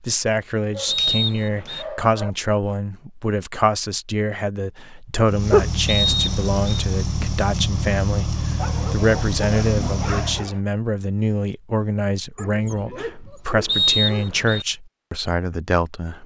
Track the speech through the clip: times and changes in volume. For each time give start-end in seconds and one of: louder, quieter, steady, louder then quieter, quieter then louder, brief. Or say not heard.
0.0-16.2 steady.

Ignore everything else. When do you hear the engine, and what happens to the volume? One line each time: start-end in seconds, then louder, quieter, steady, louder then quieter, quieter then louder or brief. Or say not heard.
5.2-10.5 steady.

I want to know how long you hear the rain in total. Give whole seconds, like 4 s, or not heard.
not heard.